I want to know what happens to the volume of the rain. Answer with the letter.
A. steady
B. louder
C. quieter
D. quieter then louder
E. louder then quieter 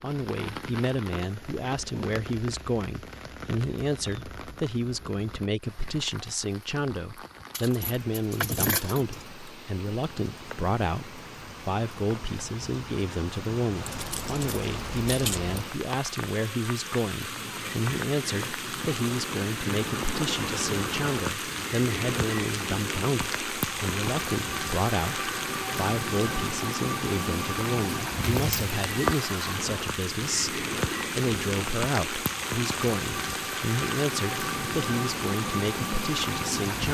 B.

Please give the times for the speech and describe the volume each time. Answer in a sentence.
The speech can be heard from 0.0 to 36.9 s, at a steady volume.